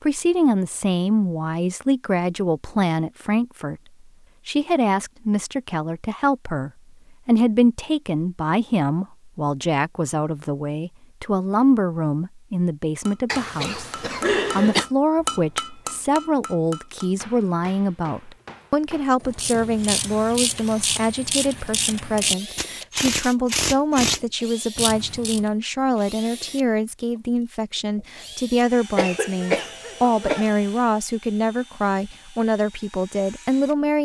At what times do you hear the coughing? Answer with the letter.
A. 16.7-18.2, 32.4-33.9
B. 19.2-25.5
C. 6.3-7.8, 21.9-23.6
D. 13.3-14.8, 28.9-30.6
D.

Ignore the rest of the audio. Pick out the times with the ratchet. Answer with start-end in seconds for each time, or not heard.
19.2-25.5.